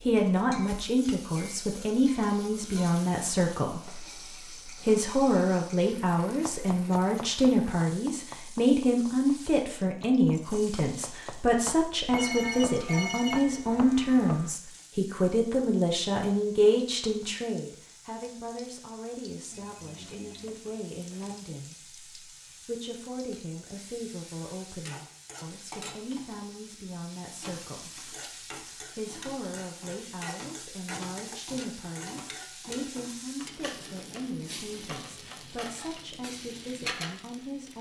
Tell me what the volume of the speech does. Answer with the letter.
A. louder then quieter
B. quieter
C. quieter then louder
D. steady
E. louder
B.